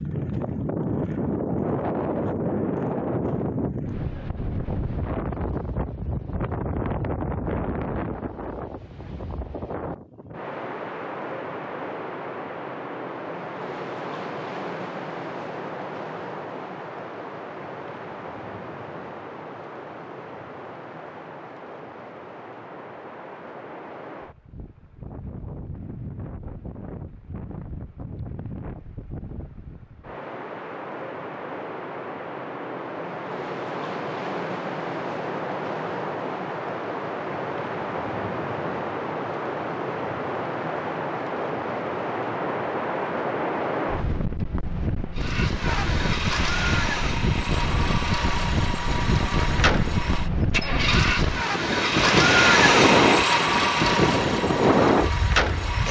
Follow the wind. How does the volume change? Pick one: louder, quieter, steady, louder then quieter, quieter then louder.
quieter then louder.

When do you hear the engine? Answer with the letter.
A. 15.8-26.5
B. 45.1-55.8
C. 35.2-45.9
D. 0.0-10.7
B.